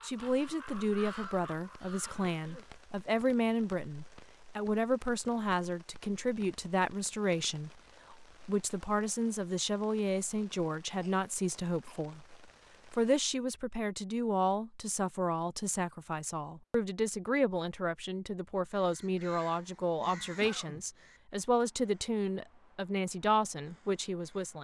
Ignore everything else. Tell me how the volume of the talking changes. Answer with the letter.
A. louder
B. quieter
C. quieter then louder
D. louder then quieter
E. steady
E.